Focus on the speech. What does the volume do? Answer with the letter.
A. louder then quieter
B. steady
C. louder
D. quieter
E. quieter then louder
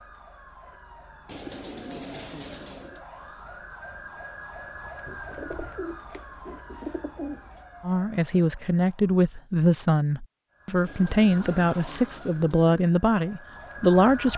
B.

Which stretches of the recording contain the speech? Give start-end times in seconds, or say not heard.
7.8-14.3.